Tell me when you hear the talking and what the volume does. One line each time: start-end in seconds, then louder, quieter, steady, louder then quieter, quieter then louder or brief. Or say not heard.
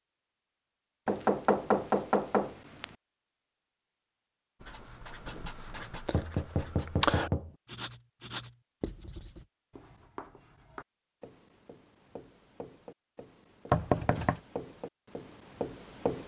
not heard.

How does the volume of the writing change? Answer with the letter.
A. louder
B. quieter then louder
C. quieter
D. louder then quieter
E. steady
B.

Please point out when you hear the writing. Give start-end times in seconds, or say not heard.
4.6-16.2.